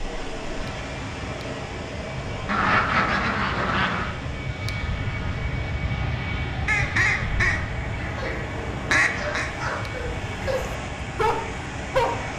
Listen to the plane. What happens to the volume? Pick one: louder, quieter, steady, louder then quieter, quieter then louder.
louder then quieter.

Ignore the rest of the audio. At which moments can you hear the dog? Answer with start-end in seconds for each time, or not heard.
8.1-12.3.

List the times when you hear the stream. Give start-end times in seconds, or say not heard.
0.0-12.3.